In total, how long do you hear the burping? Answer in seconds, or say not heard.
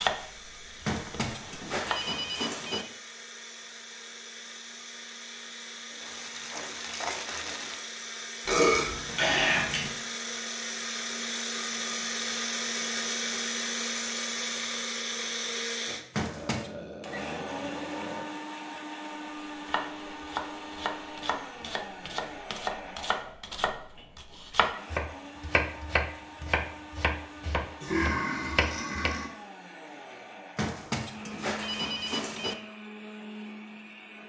5 s.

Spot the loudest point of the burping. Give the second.
9 s.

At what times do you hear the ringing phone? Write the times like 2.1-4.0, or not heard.
0.8-2.9, 16.1-16.7, 30.6-32.5.